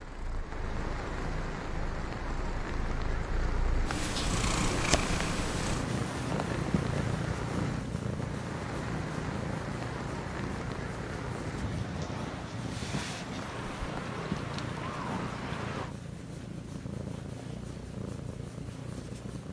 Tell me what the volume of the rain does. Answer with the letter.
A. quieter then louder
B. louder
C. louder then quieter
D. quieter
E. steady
E.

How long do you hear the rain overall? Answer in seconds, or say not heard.
16 s.